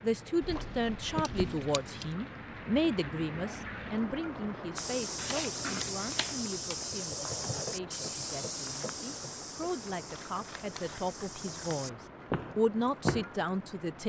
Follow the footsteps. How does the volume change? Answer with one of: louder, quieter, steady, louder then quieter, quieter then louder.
quieter then louder.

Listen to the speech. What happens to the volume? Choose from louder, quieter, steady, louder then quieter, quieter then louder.
quieter then louder.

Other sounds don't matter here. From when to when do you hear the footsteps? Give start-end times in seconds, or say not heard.
4.8-13.2.